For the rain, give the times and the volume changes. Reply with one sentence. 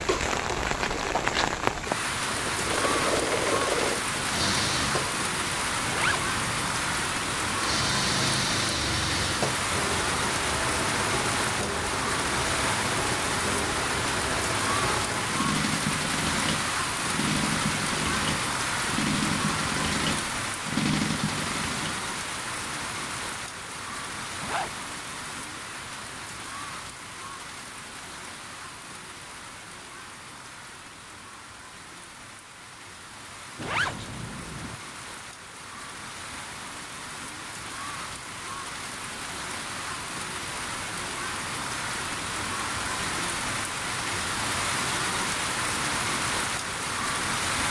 The rain can be heard from 0.0 to 47.6 s, getting quieter then louder.